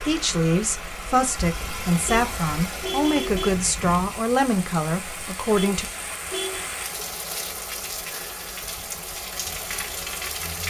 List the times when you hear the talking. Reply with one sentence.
The talking can be heard from 0.0 to 5.8 s.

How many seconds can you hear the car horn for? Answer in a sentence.
You can hear the car horn for 3 seconds altogether.